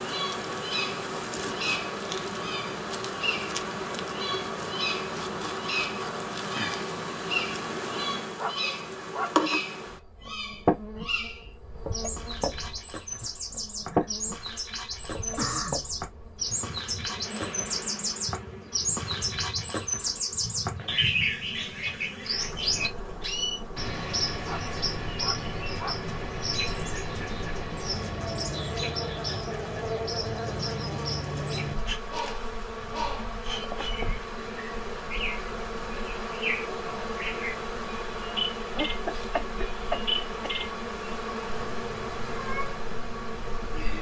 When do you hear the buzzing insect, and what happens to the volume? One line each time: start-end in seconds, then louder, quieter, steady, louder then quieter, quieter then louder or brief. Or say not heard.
0.0-43.9 quieter then louder.